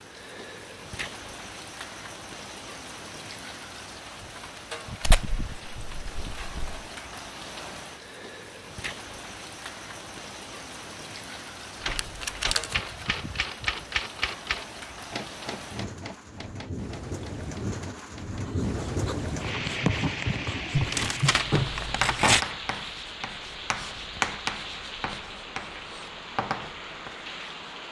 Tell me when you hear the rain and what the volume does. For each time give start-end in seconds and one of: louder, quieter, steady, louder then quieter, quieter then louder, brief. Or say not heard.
0.0-27.8 louder then quieter.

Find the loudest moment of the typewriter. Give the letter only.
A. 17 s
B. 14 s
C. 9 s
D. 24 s
B.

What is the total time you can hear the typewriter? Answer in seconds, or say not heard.
7 s.